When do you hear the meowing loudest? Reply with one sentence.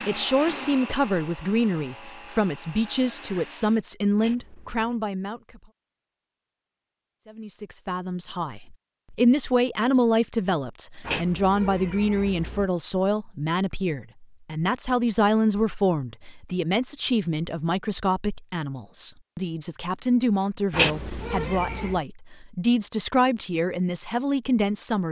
The volume of the meowing peaks at 21 seconds.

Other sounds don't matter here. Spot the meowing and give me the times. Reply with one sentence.
You can hear the meowing from 4.2 to 5.0 s, from 11.0 to 12.7 s and from 20.7 to 22.0 s.